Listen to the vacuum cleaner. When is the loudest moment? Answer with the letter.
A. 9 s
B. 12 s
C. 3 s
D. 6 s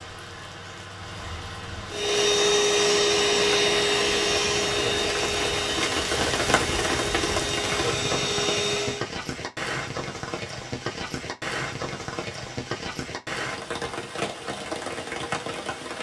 C.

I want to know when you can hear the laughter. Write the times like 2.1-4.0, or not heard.
not heard.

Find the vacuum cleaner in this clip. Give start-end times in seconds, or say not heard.
1.9-9.1.